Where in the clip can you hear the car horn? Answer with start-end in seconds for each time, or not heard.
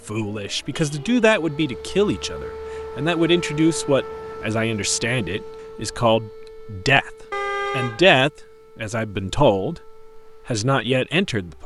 0.7-1.1, 7.3-8.2.